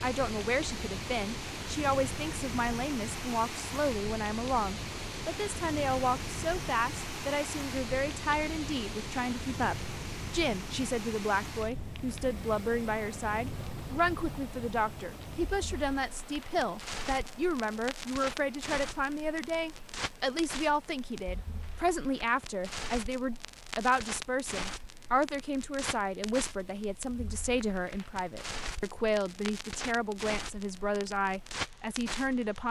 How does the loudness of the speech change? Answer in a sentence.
The loudness of the speech stays about the same.